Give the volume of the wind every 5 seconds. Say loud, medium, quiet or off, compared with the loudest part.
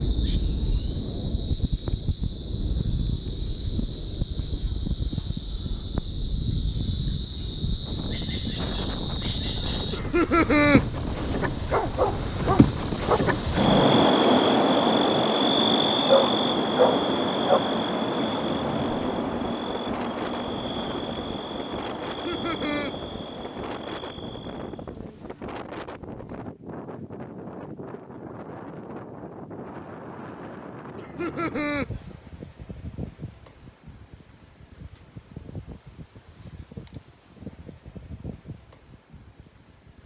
loud, loud, loud, loud, loud, medium, medium, medium.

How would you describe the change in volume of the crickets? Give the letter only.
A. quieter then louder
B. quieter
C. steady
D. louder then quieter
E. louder
D.